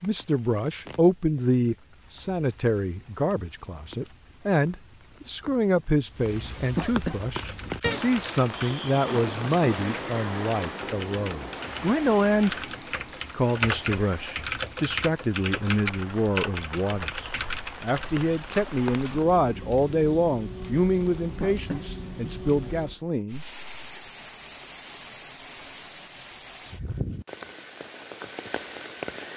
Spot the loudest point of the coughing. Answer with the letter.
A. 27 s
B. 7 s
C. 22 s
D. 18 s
B.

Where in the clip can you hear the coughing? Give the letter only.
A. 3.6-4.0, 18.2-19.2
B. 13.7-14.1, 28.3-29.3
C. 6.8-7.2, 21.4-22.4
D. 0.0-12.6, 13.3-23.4
C.